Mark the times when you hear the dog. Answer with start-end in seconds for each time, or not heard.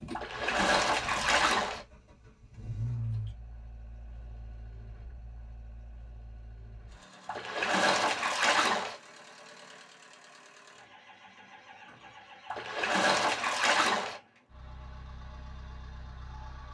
not heard.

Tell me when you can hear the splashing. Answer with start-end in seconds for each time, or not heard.
0.1-1.9, 7.2-8.9, 12.5-14.2.